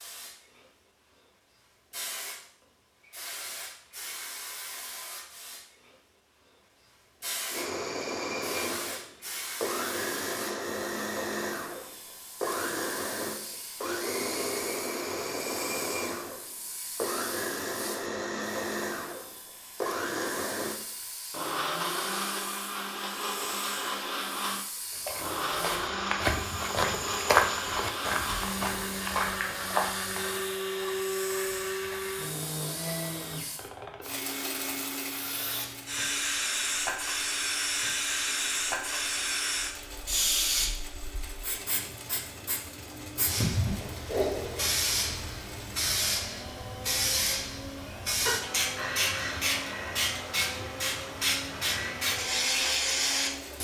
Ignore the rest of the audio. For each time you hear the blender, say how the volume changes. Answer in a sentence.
The blender can be heard from 7.5 to 53.5 s, getting quieter.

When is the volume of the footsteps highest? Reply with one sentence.
The loudest moment of the footsteps is at 27 seconds.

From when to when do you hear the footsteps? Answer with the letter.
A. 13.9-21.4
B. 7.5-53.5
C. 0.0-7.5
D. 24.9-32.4
D.